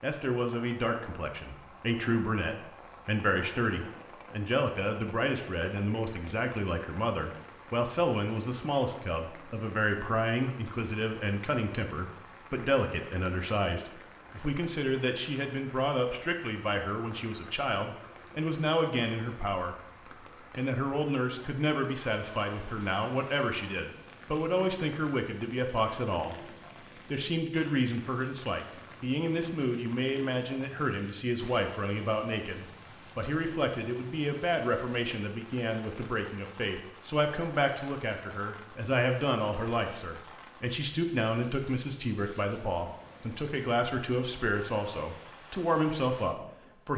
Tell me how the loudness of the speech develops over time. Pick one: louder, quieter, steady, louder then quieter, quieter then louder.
steady.